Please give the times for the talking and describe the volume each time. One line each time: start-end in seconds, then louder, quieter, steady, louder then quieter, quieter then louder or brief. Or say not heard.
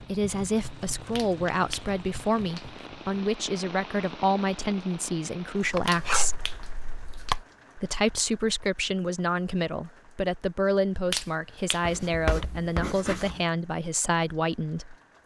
0.0-6.4 steady
7.8-14.9 steady.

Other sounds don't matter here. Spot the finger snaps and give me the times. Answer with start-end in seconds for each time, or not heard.
1.1-2.9, 5.8-7.3, 11.1-11.9.